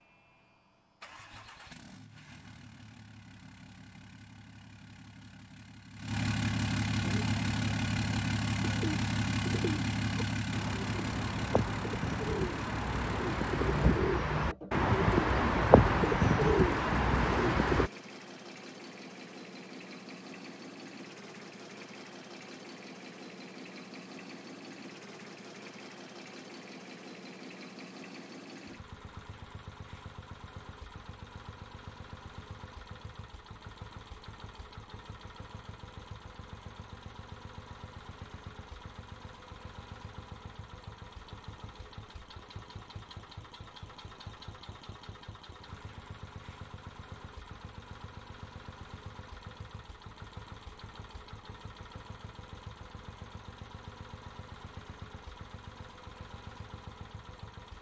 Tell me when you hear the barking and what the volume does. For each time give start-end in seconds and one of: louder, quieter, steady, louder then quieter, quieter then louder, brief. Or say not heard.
not heard.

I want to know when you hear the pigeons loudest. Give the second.
16 s.